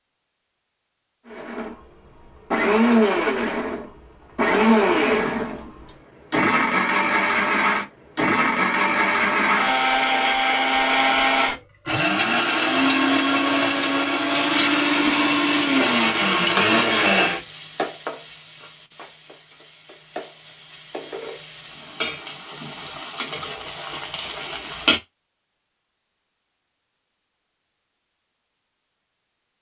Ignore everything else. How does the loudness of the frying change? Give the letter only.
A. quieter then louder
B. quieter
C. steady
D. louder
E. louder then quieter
A.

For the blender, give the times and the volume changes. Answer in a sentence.
The blender can be heard from 1.2 to 17.4 s, at a steady volume.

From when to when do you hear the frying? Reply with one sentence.
The frying can be heard from 14.3 to 25.0 s.